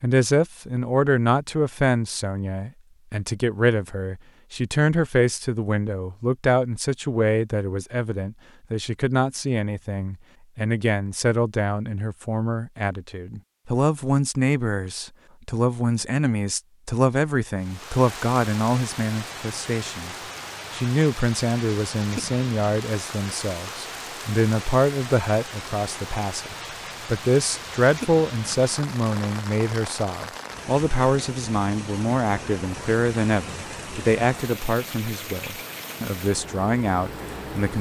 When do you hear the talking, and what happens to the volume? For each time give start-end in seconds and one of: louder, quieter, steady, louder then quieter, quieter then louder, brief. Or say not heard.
0.0-37.7 steady.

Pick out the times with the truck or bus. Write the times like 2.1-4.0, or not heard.
not heard.